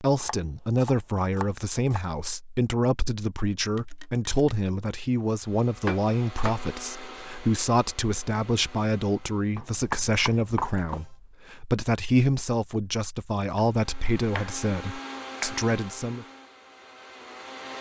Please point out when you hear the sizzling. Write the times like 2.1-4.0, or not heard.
not heard.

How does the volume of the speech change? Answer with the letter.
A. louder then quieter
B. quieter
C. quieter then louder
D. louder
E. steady
E.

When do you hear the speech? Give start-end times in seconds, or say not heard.
0.0-16.2.